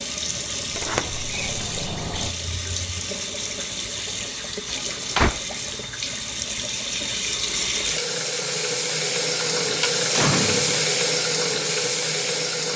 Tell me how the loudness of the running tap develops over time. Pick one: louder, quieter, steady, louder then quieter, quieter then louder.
louder.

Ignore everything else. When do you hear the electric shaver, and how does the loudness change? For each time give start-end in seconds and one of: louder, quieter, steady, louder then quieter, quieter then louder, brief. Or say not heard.
not heard.